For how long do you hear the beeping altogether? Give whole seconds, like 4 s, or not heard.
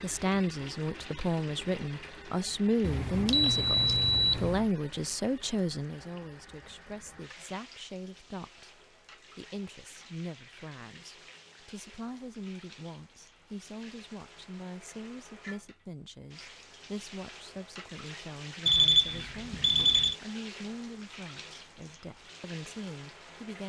3 s.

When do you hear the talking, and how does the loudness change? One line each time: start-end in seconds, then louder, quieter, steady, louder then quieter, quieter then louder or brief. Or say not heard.
0.0-23.6 quieter.